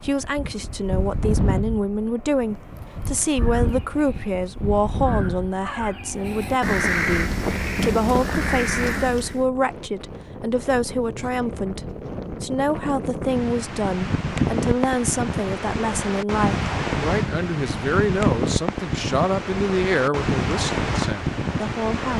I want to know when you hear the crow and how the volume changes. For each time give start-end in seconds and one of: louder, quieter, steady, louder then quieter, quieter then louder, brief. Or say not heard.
3.2-9.4 louder.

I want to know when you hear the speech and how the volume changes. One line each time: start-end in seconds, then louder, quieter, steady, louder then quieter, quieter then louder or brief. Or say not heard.
0.0-22.1 steady.